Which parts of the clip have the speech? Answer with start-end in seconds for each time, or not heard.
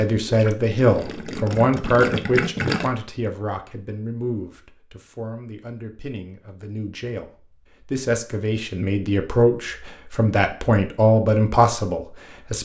0.0-12.6.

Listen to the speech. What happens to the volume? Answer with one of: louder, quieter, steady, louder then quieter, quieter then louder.
quieter then louder.